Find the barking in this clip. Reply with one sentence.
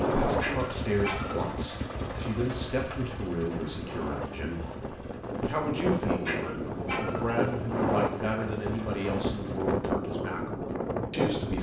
You can hear the barking from 0.2 to 1.5 s and from 6.2 to 7.3 s.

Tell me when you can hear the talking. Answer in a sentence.
You can hear the talking from 0.0 to 11.5 s.